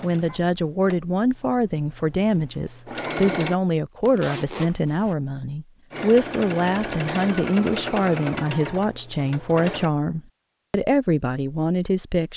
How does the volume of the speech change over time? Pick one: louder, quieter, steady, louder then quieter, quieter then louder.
steady.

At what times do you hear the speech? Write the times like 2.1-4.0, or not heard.
0.0-12.3.